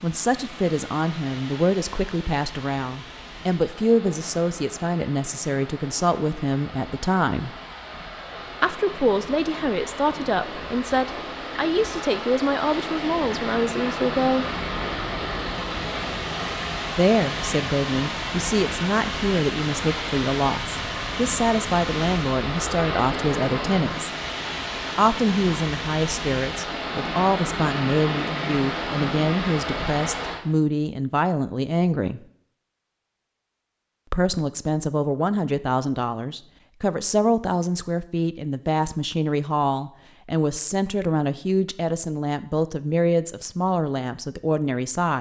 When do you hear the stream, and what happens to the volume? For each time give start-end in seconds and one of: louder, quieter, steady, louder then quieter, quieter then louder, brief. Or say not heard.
0.0-30.4 louder.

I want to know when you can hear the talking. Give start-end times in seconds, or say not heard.
0.0-7.5, 8.6-14.4, 16.9-24.1, 24.9-32.2, 34.1-45.1.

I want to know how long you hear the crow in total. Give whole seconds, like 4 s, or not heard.
not heard.